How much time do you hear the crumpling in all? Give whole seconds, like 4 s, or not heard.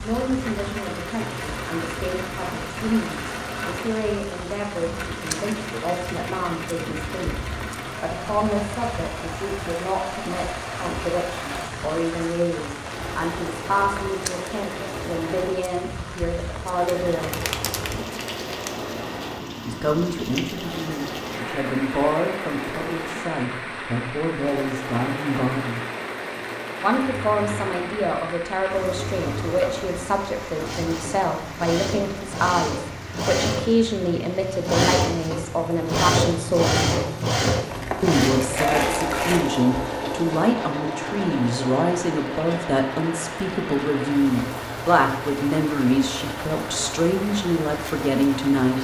4 s.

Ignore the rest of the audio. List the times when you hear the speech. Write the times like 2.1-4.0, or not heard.
0.0-7.3, 8.0-17.3, 19.6-25.8, 26.8-36.9, 38.0-48.7.